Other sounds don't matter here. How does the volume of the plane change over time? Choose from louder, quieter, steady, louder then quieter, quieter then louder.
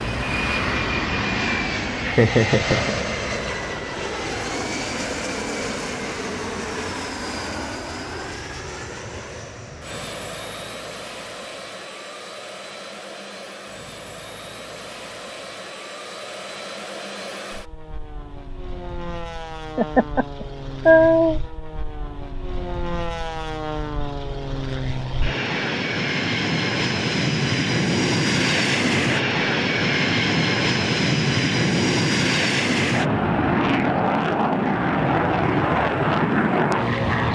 quieter then louder.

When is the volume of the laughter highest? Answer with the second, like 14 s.
21 s.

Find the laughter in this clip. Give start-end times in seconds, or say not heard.
2.0-3.0, 19.8-21.4.